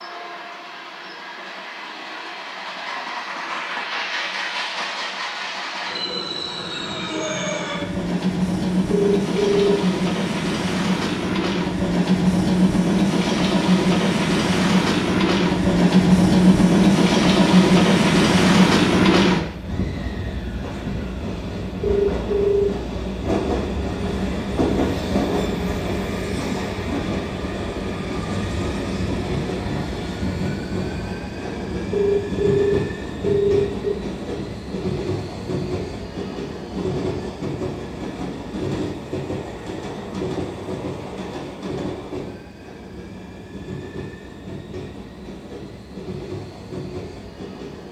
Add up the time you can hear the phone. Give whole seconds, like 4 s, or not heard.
4 s.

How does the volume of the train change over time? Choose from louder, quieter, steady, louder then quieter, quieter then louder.
louder then quieter.